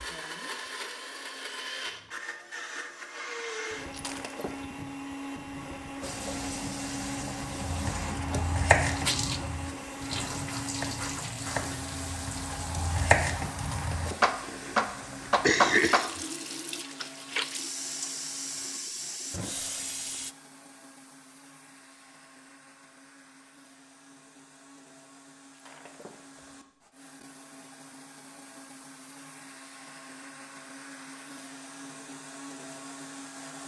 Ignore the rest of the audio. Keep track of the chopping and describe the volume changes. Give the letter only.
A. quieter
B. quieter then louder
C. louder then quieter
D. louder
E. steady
B.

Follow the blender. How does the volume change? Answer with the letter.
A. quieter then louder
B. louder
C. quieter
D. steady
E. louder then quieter
A.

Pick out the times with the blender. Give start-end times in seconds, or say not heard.
0.0-33.6.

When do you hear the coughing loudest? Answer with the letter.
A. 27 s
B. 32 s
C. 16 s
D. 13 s
C.